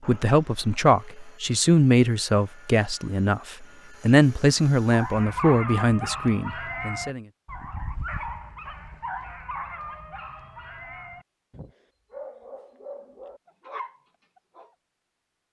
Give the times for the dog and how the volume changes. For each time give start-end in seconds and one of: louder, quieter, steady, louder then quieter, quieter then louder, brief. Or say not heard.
4.8-14.8 quieter.